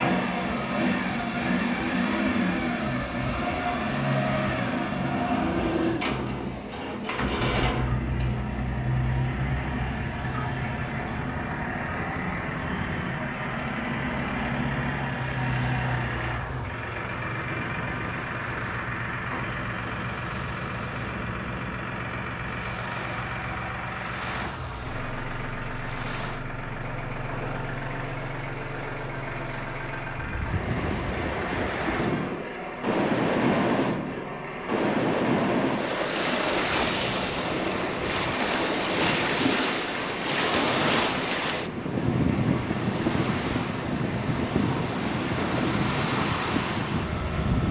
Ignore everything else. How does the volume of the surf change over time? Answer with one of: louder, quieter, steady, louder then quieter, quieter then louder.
louder.